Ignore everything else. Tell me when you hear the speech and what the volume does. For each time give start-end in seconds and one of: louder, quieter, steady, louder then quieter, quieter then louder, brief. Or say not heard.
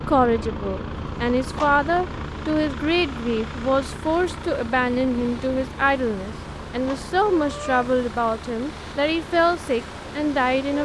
0.1-10.8 steady.